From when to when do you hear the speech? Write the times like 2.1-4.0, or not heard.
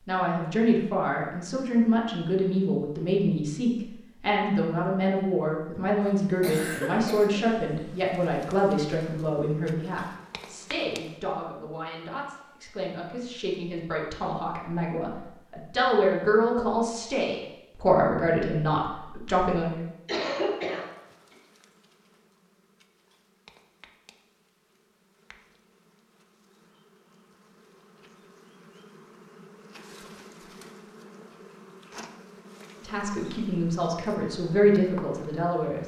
0.1-19.9, 32.8-35.8.